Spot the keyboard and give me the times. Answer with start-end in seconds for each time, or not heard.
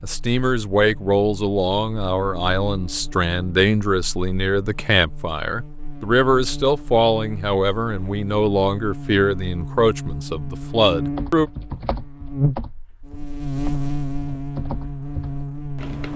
11.2-16.1.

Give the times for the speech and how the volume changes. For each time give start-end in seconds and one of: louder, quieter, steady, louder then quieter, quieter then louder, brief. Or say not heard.
0.0-11.5 steady.